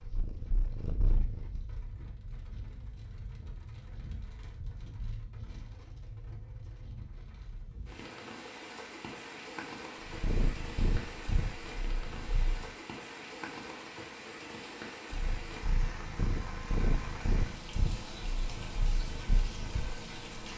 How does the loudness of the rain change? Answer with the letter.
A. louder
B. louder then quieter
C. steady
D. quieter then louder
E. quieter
A.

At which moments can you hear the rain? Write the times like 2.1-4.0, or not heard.
0.0-20.5.